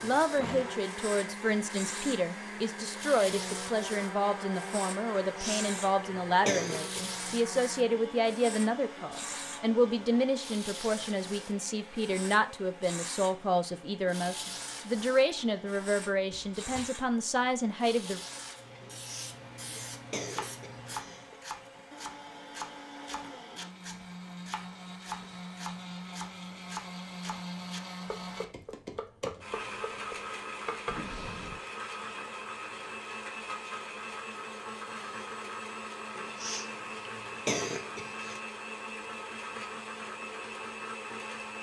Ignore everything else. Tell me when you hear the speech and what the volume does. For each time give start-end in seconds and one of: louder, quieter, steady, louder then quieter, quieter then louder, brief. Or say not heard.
0.0-18.2 steady.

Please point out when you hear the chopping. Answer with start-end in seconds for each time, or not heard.
20.3-31.1.